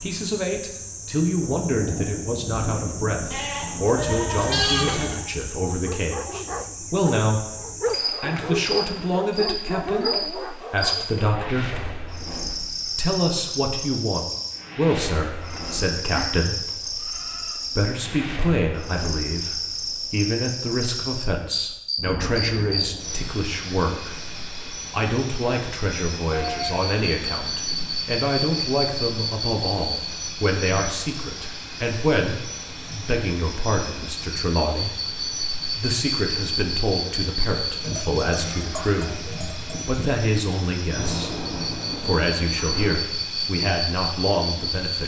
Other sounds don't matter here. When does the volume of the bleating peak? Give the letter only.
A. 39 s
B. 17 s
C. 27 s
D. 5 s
D.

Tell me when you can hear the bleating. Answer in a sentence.
You can hear the bleating from 3.3 to 5.2 s, from 15.3 to 17.8 s, from 26.3 to 27.9 s and from 37.8 to 40.1 s.